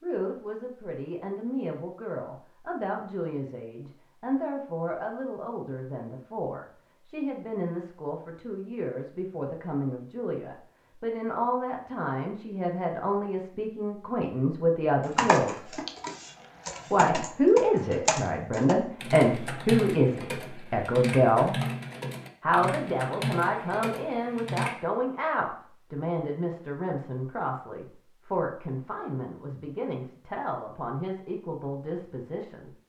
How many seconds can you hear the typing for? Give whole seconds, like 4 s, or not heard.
10 s.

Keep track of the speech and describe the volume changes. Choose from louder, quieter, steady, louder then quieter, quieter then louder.
louder then quieter.